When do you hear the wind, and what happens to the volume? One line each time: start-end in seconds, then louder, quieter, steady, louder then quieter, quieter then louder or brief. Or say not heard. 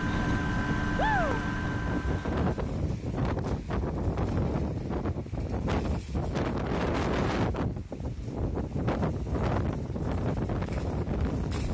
0.0-11.6 steady.